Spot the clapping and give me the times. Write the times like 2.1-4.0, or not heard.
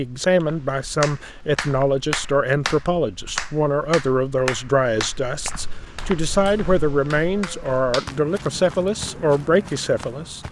1.0-8.1.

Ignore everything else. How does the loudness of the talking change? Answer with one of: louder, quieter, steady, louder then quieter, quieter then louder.
steady.